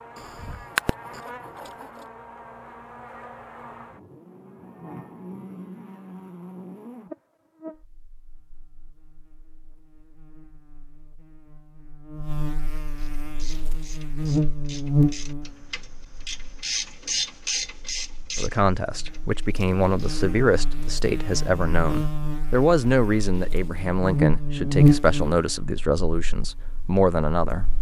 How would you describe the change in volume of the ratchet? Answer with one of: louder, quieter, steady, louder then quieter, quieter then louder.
louder then quieter.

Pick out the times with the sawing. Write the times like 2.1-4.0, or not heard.
0.1-2.0.